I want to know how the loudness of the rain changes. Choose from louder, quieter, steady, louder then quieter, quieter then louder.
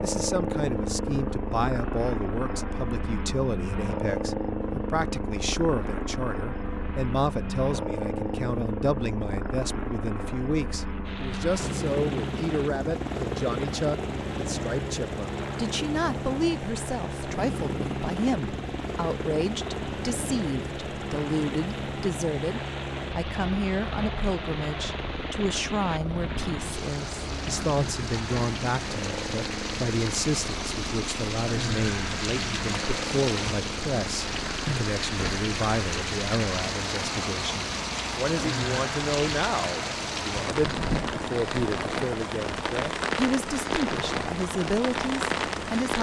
louder.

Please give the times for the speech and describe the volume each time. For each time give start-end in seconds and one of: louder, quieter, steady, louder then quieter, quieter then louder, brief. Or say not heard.
0.0-45.9 steady.